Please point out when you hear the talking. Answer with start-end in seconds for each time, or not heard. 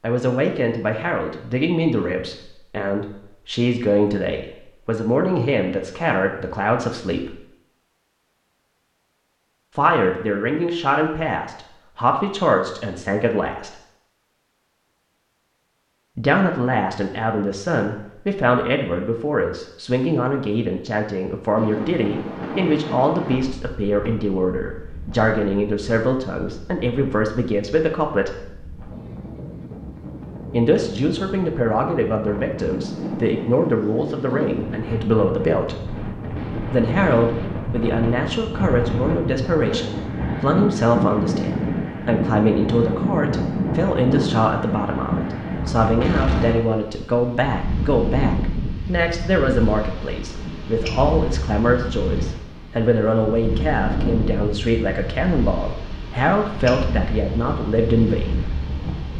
0.0-7.3, 9.8-13.7, 16.1-28.4, 30.5-35.8, 36.7-58.4.